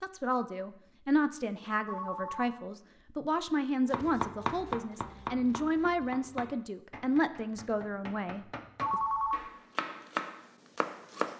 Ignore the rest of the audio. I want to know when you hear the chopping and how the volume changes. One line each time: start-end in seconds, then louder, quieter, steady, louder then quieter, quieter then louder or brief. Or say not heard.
3.9-11.3 quieter then louder.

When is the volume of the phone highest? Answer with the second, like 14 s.
9 s.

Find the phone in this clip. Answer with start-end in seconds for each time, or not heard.
1.9-2.5, 8.8-9.5.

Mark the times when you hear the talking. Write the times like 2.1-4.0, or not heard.
0.0-9.0.